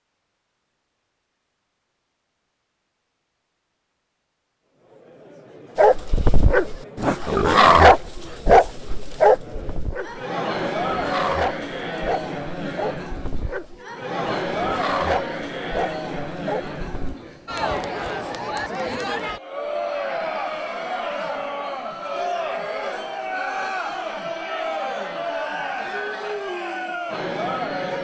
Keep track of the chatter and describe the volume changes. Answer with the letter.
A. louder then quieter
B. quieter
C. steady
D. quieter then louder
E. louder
E.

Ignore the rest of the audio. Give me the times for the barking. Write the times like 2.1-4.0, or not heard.
5.8-17.1.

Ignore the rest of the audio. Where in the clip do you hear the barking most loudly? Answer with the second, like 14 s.
8 s.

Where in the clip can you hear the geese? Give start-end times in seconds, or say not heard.
not heard.